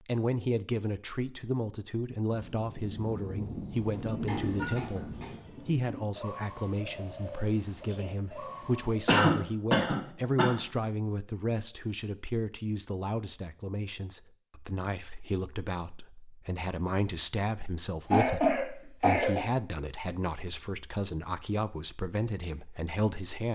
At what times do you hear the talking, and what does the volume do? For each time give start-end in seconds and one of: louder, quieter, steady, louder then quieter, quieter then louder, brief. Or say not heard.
0.1-23.4 steady.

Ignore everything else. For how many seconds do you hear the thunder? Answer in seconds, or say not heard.
3 s.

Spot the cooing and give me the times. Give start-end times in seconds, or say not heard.
4.0-9.2.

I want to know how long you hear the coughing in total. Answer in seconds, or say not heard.
4 s.